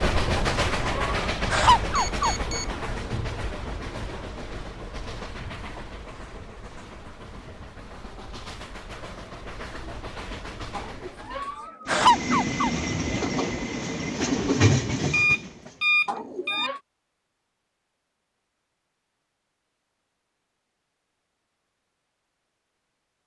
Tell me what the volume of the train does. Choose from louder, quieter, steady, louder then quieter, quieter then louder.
quieter then louder.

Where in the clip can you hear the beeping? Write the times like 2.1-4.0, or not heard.
1.9-2.8, 15.1-16.7.